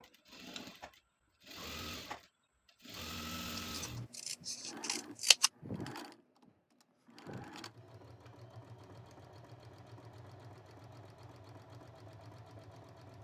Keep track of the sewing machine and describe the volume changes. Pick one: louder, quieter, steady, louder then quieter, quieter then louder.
quieter.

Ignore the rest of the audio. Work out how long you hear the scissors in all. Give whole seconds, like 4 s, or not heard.
2 s.